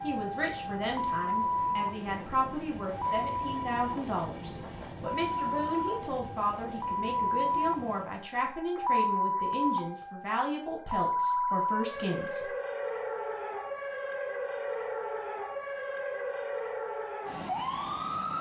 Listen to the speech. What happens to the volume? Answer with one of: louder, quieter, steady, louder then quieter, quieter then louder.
steady.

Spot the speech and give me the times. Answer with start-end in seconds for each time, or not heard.
0.0-12.5.